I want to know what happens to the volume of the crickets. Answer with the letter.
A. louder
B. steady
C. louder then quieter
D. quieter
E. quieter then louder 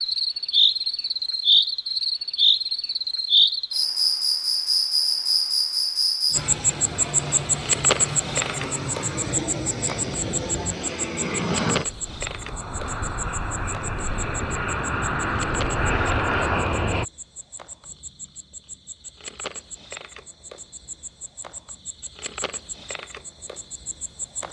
D.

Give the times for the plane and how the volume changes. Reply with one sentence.
You can hear the plane from 6.3 to 17.1 s, getting louder.